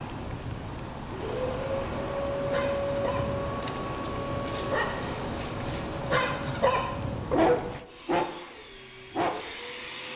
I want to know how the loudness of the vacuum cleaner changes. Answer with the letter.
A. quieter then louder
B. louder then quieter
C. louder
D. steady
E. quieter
E.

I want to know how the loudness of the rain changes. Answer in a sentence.
The volume of the rain stays about the same.